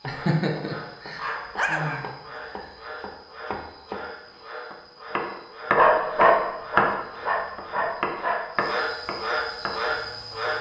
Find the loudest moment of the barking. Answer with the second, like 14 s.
6 s.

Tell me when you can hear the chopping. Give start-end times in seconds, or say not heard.
0.0-4.0, 4.7-10.5.